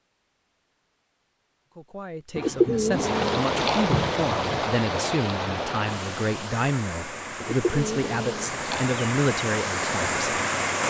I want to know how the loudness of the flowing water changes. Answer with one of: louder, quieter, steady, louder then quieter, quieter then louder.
quieter then louder.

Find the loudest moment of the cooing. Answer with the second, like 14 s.
3 s.